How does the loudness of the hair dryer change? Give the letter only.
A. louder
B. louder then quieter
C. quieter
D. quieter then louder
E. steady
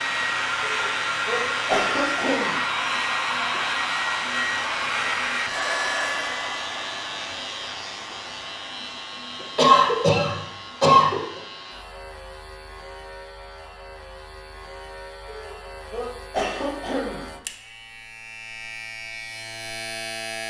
C.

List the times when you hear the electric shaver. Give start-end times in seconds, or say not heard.
0.0-20.4.